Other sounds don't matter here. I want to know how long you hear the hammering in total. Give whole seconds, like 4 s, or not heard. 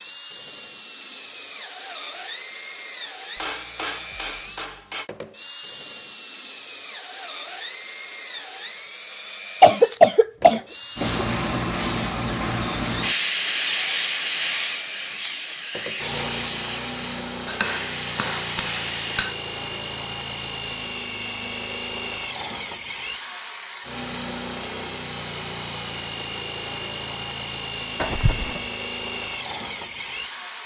4 s.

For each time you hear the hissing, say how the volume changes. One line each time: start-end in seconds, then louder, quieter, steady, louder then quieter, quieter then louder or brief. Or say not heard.
10.9-19.2 quieter.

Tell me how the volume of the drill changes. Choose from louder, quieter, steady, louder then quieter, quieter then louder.
steady.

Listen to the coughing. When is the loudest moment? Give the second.
10 s.